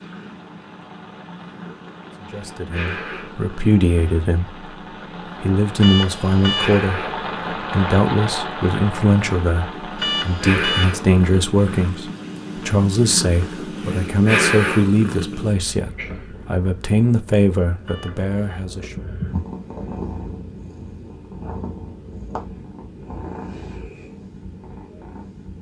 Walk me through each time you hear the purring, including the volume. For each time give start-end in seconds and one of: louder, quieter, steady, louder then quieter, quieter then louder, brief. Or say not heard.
0.0-25.5 louder then quieter.